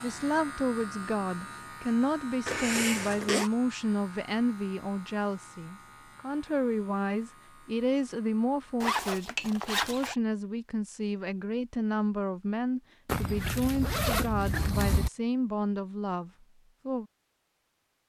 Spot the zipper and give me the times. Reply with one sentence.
You can hear the zipper from 2.5 to 3.5 s, from 8.8 to 10.2 s and from 13.1 to 15.1 s.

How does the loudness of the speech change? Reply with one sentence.
The volume of the speech stays about the same.